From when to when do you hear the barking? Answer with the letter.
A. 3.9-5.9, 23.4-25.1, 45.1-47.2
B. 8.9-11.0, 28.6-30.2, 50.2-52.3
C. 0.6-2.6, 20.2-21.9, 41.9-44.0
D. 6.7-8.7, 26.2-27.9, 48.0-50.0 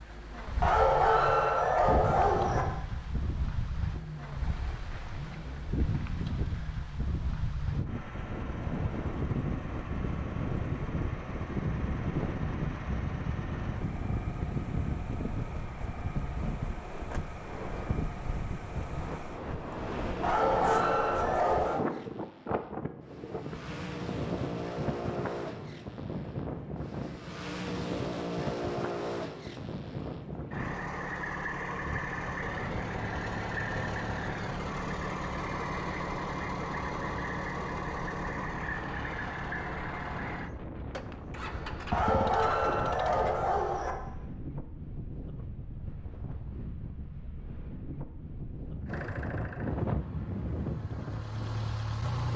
C.